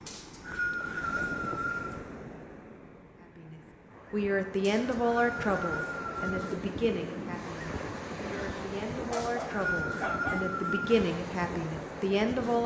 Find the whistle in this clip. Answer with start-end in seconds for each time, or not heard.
0.1-1.9, 4.6-6.5, 9.1-11.0.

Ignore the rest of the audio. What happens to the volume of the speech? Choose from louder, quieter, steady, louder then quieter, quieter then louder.
quieter then louder.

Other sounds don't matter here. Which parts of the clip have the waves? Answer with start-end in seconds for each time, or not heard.
0.0-12.6.